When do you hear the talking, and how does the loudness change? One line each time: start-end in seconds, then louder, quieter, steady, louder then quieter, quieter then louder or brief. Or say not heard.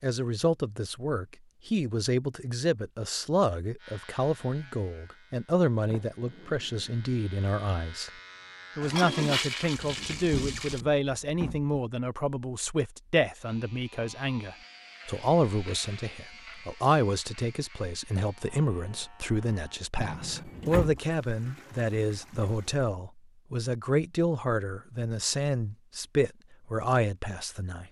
0.0-8.1 steady
8.8-27.8 steady.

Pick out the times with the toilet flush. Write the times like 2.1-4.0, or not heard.
8.8-10.8, 20.9-22.9.